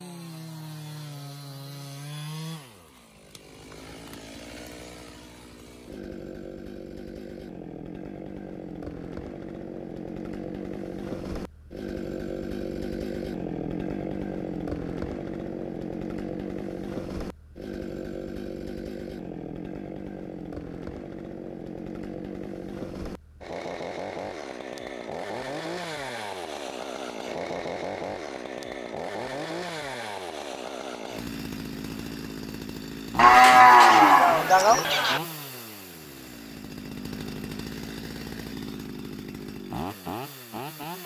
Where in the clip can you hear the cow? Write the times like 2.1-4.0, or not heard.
33.1-35.2.